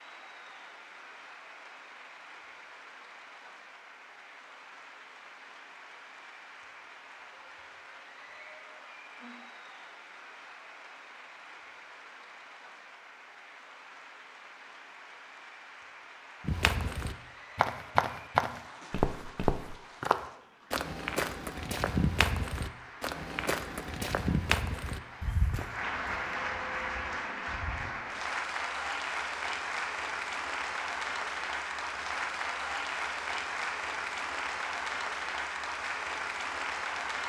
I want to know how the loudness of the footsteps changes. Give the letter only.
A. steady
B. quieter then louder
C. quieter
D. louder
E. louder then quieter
C.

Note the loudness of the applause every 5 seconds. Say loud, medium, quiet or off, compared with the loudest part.
quiet, quiet, quiet, quiet, quiet, loud, loud, loud.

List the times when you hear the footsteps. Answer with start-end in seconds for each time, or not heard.
16.4-27.9.